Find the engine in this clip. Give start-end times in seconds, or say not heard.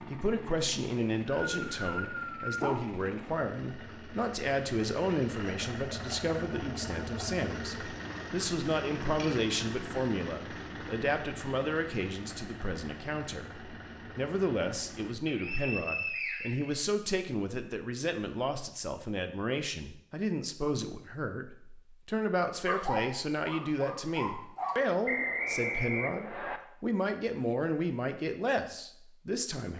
0.0-15.2.